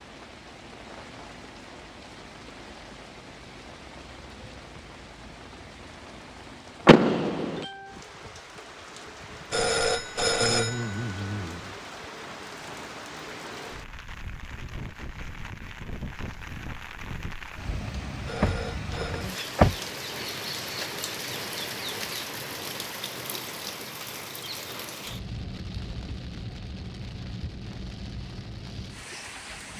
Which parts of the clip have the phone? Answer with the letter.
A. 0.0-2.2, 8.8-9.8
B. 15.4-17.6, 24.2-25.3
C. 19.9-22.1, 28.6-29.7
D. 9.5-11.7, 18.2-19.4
D.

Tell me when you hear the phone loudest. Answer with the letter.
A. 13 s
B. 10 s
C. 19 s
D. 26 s
B.